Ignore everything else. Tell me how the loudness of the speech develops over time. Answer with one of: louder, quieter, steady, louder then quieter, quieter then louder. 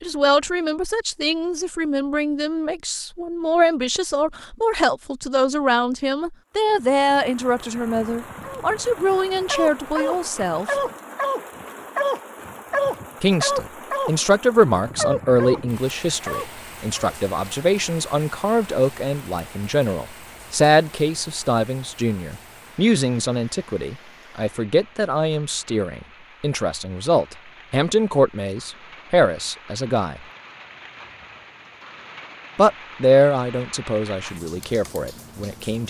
steady.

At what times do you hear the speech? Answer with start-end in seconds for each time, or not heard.
0.0-10.8, 13.2-30.2, 32.5-35.8.